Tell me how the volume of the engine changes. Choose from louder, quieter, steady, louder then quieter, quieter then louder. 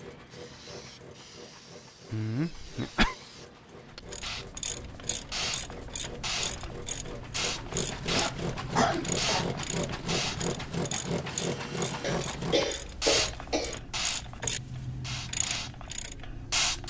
louder.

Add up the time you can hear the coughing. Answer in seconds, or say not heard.
4 s.